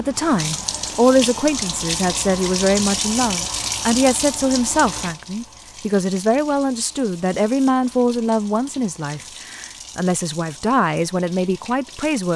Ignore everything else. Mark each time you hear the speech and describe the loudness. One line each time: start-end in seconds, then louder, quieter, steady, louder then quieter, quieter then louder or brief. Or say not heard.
0.0-12.3 steady.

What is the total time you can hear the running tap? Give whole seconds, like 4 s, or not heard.
12 s.